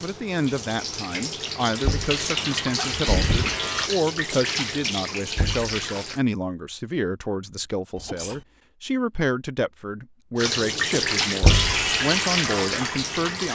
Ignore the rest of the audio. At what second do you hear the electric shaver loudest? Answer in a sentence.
The loudest moment of the electric shaver is at 12 seconds.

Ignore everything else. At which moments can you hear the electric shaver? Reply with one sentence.
The electric shaver can be heard from 1.7 to 3.9 s and from 11.5 to 13.5 s.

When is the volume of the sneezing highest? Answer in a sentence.
The volume of the sneezing peaks at 3 seconds.